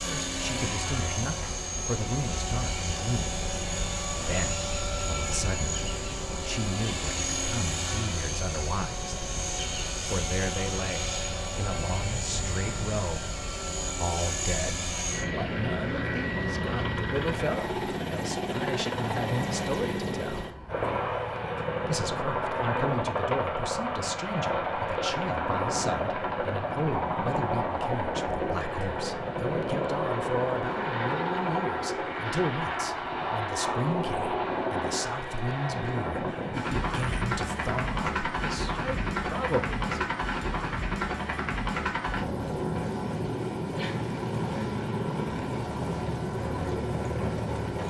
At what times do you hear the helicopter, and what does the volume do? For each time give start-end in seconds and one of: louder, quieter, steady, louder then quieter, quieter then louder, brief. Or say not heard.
0.0-47.8 steady.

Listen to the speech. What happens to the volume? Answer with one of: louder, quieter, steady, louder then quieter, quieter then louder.
steady.